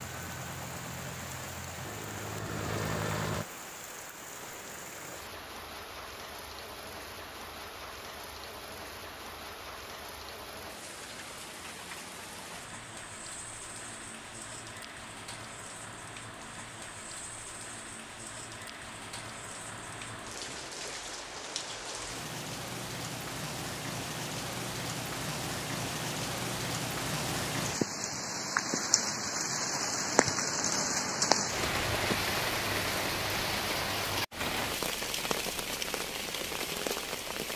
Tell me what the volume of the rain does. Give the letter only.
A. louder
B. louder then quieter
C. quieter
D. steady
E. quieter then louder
A.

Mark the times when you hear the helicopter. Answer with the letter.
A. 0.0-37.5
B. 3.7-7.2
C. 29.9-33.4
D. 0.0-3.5
D.